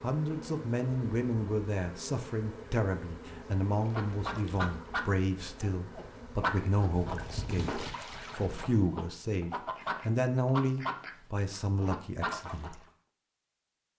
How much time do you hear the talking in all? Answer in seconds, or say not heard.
13 s.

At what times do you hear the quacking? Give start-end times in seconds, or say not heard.
3.7-12.8.